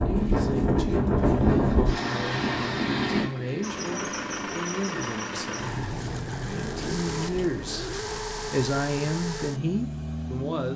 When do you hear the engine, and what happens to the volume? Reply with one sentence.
The engine can be heard from 3.6 to 10.7 s, at a steady volume.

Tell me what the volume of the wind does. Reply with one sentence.
The volume of the wind goes down.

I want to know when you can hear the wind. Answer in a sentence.
The wind can be heard from 0.0 to 7.8 s.